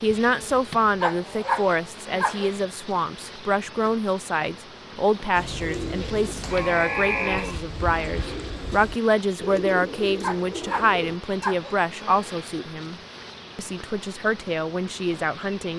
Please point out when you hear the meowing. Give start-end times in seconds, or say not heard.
not heard.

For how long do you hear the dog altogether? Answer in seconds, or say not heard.
3 s.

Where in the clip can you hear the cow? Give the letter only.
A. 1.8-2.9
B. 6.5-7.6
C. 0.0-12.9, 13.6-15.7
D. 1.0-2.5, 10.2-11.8
B.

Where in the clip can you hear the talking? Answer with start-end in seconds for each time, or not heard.
0.0-12.9, 13.6-15.7.